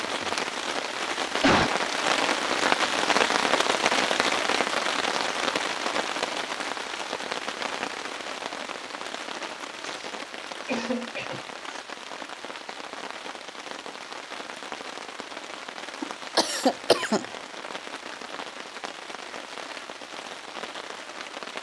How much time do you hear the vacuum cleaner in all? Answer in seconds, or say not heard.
not heard.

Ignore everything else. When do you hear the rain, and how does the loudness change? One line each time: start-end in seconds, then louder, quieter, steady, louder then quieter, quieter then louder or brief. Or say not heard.
0.0-21.5 quieter.